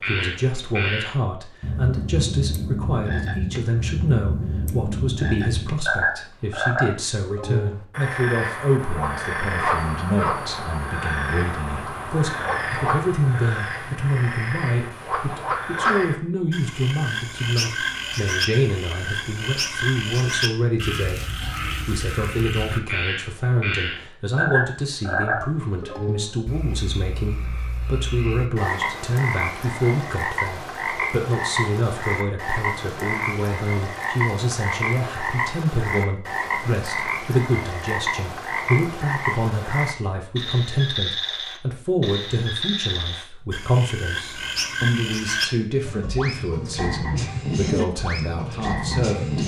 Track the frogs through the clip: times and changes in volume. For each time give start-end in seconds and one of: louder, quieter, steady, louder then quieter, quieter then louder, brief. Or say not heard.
0.0-49.4 steady.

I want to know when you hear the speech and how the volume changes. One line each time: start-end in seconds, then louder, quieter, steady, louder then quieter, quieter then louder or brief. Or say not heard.
0.1-49.4 steady.